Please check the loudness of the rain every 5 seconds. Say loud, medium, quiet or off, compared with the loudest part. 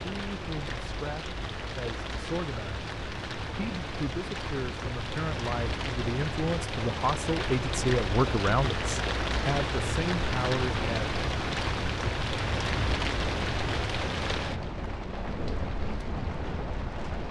medium, loud, loud, medium.